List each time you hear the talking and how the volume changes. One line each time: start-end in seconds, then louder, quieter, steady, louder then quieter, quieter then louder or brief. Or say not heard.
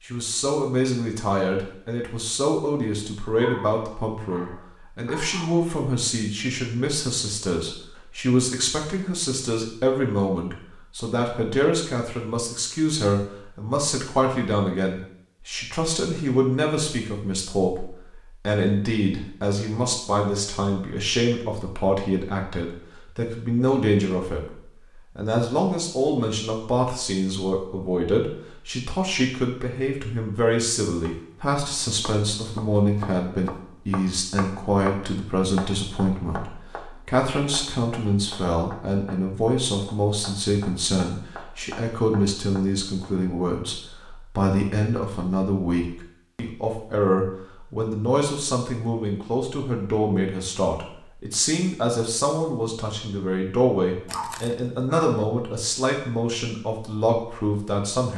0.0-24.6 steady
25.1-58.1 steady.